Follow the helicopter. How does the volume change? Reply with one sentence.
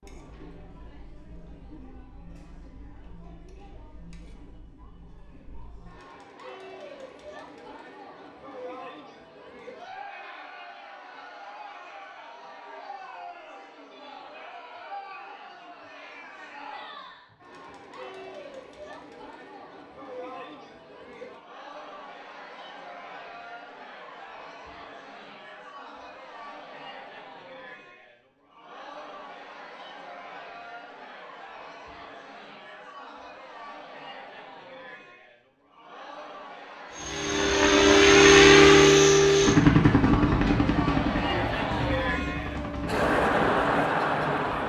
The loudness of the helicopter goes down.